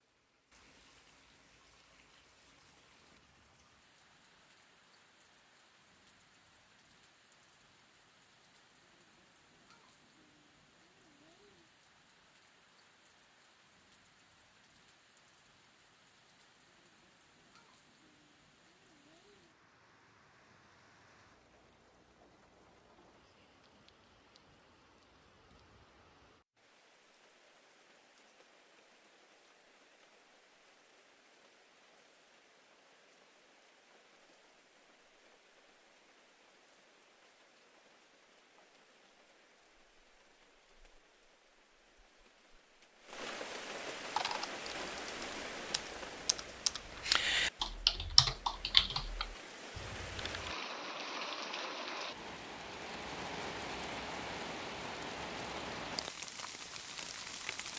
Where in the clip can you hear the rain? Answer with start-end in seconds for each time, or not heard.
0.0-57.7.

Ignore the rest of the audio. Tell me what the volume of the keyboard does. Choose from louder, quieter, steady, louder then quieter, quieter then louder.
louder then quieter.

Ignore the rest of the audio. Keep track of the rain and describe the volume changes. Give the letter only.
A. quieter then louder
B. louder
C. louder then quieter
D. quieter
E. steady
B.